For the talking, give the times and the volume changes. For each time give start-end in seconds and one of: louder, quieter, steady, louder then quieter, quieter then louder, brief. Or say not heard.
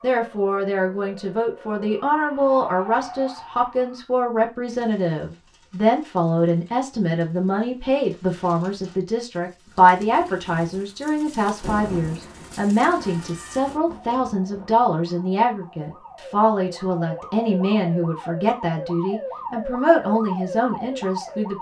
0.0-21.5 steady.